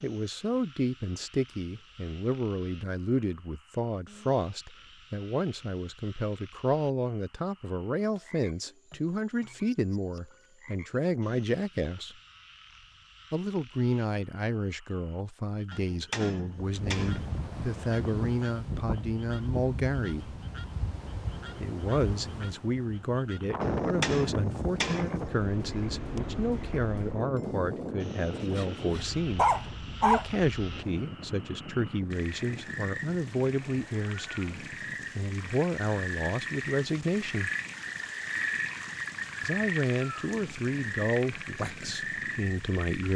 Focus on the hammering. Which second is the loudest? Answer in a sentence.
The loudest moment of the hammering is at 24 seconds.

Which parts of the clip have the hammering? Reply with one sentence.
The hammering can be heard from 15.7 to 17.4 s and from 23.6 to 25.3 s.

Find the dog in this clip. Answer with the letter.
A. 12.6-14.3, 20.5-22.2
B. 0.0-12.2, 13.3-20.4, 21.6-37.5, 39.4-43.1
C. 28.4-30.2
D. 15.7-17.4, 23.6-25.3
C.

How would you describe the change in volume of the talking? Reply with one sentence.
The loudness of the talking stays about the same.